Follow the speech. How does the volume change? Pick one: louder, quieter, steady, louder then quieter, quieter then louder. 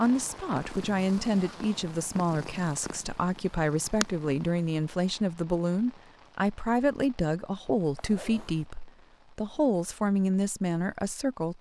steady.